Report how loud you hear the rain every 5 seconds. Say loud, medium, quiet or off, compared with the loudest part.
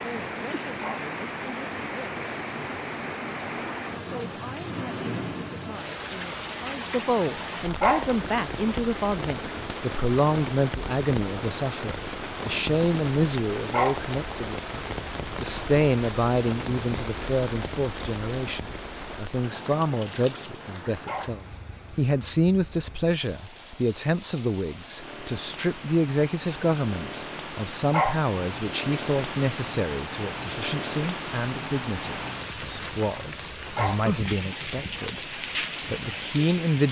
loud, loud, loud, loud, medium, loud, loud, loud.